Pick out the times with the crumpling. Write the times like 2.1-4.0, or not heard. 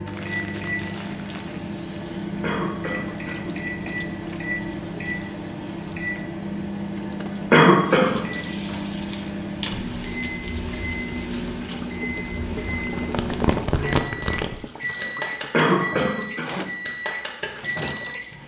0.1-1.6, 9.1-10.4, 12.8-14.7.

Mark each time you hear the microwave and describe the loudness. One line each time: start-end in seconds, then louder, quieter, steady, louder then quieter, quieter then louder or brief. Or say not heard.
0.0-18.4 steady.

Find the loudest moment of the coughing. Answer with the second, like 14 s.
8 s.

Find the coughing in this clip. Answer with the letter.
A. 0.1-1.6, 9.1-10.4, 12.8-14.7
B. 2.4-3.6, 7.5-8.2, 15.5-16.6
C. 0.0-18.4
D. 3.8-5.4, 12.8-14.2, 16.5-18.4
B.